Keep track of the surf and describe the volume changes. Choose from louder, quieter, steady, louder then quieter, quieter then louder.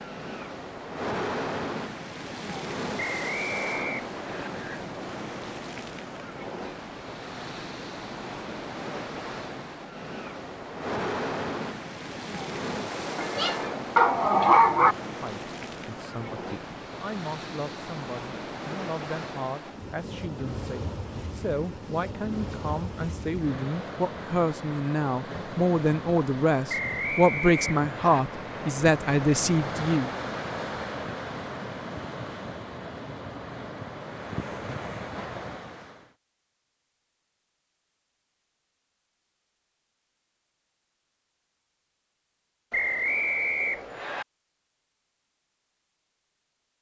steady.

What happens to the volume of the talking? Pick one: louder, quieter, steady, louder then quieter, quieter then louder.
louder.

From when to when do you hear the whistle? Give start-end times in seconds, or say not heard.
3.0-4.5, 26.6-28.2, 42.7-44.2.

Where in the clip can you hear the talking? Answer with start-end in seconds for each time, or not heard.
15.0-30.1.